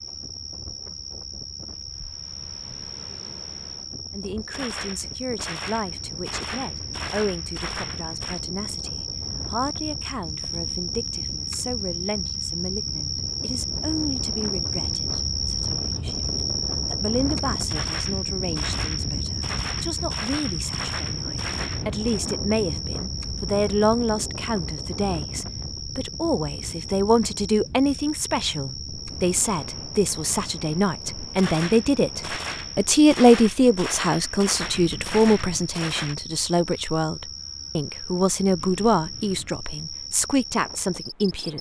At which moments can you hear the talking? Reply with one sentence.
The talking can be heard from 4.1 to 41.5 s.